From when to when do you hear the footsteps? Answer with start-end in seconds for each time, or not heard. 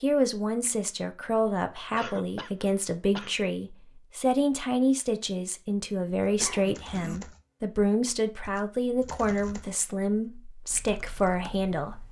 not heard.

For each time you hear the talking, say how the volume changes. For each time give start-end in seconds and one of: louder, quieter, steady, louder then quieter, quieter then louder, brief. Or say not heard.
0.0-12.0 steady.